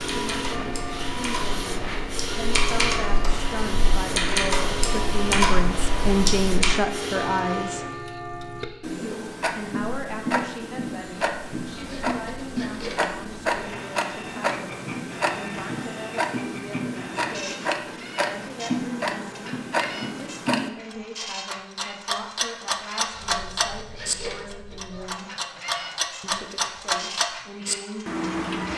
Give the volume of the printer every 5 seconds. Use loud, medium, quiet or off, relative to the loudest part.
loud, loud, medium, medium, medium, medium.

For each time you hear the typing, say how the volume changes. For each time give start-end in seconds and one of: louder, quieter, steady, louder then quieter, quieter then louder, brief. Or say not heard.
0.0-6.8 louder.